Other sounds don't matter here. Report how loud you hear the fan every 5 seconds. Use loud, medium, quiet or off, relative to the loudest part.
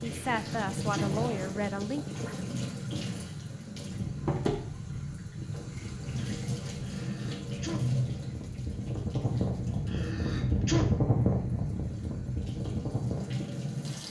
medium, medium, loud.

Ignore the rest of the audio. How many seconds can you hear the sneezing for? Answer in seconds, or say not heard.
3 s.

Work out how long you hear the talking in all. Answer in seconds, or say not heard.
2 s.